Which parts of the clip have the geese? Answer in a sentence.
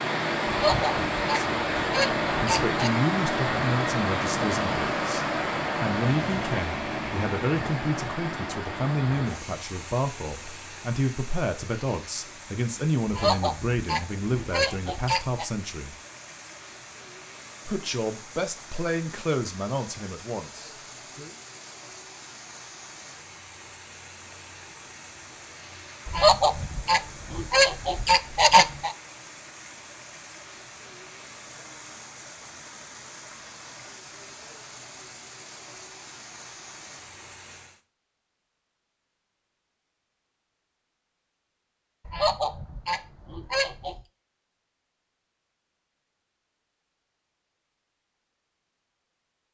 The geese can be heard from 0.5 to 3.0 s, from 13.1 to 15.4 s, from 26.1 to 28.9 s and from 42.0 to 44.0 s.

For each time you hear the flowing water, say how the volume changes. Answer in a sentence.
You can hear the flowing water from 0.0 to 37.8 s, getting quieter.